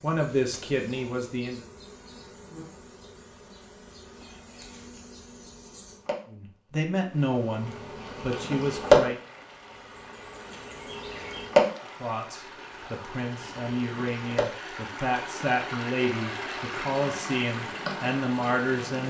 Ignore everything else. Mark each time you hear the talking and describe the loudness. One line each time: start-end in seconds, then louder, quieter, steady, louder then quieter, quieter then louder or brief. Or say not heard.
0.0-1.6 brief
6.2-9.2 brief
12.0-19.0 louder.